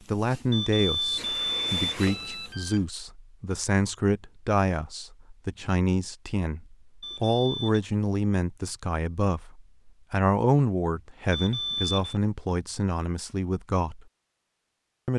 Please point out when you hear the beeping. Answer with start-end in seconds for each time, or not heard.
0.5-2.9, 7.0-7.8, 11.3-12.2.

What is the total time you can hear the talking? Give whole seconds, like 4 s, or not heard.
14 s.